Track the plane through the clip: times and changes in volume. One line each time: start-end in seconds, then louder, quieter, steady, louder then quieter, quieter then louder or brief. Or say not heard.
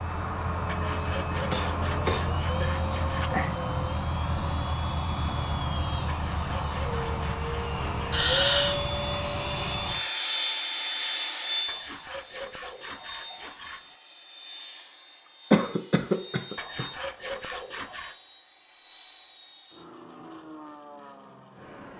0.0-21.9 quieter.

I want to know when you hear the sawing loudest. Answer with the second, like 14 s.
3 s.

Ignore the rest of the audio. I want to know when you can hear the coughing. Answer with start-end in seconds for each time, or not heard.
1.0-2.7, 8.1-8.8, 15.5-16.9.